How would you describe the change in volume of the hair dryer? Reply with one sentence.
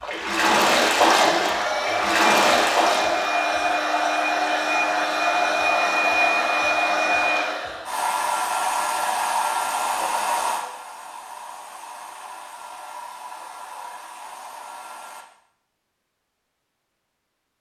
The loudness of the hair dryer goes down.